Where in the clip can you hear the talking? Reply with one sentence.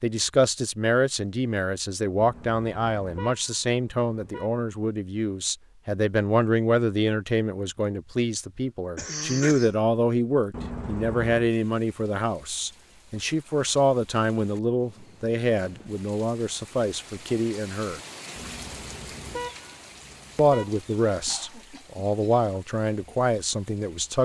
The talking can be heard from 0.0 to 18.0 s and from 20.4 to 24.2 s.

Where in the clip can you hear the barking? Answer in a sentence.
The barking can't be heard in this clip.